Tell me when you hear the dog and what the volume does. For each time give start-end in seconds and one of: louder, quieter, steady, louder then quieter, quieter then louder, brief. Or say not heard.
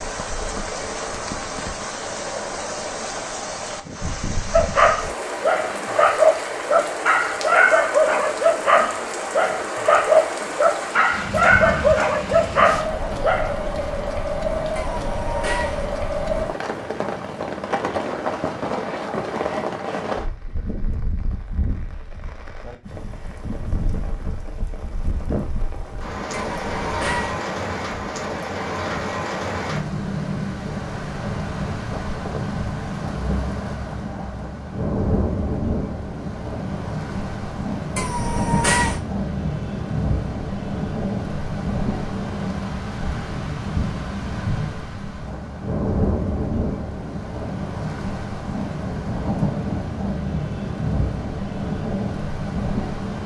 4.5-13.6 steady.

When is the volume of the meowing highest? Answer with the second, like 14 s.
39 s.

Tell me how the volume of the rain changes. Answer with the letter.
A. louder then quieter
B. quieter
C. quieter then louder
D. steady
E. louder
D.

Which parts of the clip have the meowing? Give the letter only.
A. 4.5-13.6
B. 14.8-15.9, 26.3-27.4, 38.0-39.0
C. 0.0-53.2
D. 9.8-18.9
B.